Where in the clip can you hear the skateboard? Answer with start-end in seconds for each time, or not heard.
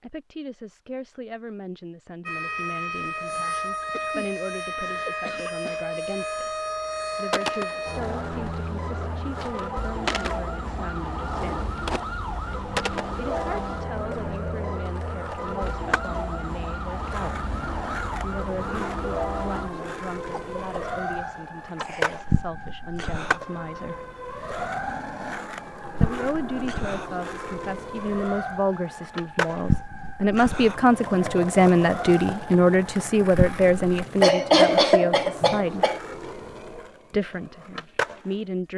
7.2-38.4.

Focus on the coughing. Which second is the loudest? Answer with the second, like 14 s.
35 s.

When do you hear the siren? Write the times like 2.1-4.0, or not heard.
2.2-34.1.